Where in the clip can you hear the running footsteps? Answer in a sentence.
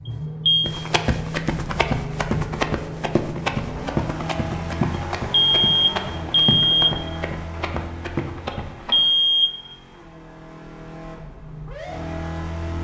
You can hear the running footsteps from 0.6 to 9.0 s.